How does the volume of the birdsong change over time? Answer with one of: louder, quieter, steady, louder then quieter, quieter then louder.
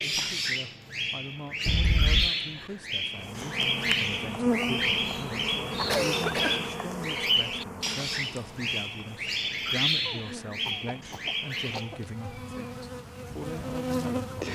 steady.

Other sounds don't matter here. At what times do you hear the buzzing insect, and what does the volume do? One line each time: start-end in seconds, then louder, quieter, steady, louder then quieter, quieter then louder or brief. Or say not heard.
3.1-14.5 quieter then louder.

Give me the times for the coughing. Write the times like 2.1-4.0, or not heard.
1.6-2.3, 5.8-6.7, 10.1-12.0.